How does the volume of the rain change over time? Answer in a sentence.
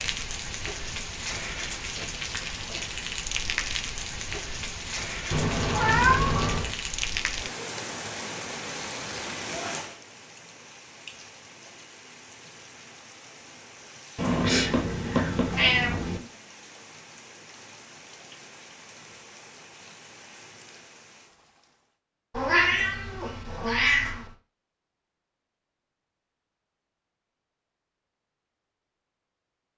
The volume of the rain goes down.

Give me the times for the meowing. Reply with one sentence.
You can hear the meowing from 5.3 to 6.8 s, from 14.2 to 16.2 s and from 22.3 to 24.2 s.